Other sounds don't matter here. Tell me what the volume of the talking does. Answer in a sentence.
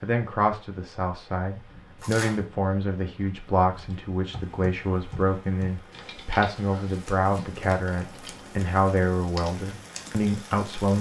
The volume of the talking stays about the same.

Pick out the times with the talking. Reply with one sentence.
The talking can be heard from 0.0 to 10.9 s.